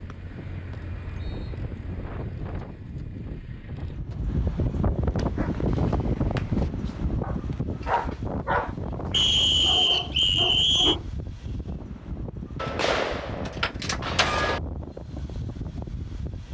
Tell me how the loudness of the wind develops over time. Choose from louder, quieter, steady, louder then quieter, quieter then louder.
louder then quieter.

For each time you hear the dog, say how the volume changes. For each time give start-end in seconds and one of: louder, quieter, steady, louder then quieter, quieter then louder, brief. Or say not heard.
5.1-11.1 louder then quieter.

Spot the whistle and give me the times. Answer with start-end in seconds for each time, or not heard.
0.1-1.5, 9.1-10.9.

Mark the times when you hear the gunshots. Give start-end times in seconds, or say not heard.
12.6-14.6.